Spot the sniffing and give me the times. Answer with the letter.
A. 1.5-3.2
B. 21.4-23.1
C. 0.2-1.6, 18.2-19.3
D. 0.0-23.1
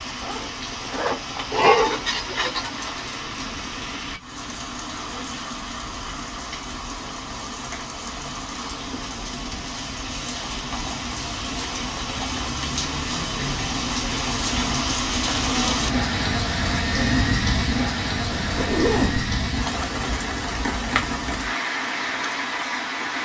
A.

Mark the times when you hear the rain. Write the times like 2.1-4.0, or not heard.
0.0-23.1.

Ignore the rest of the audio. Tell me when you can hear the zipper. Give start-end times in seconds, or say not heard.
0.2-1.6, 18.2-19.3.